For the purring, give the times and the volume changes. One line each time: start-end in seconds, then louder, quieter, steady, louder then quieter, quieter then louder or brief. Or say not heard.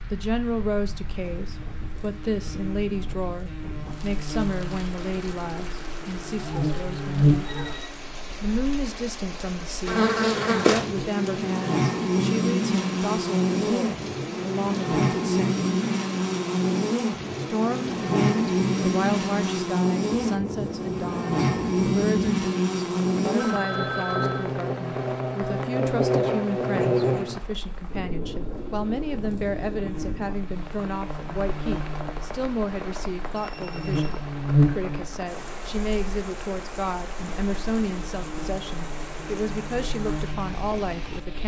not heard.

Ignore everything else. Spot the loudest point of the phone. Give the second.
24 s.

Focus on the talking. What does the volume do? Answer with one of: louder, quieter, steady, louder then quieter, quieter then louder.
steady.